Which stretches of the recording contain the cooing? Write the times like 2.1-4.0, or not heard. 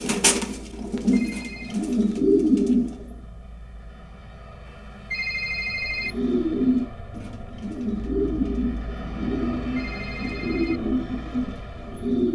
0.0-3.1, 6.0-12.3.